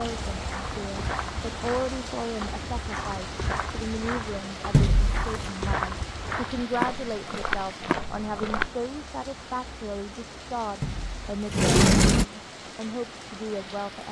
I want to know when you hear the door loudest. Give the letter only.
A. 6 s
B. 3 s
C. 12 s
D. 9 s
C.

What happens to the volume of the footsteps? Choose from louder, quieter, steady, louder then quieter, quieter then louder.
louder.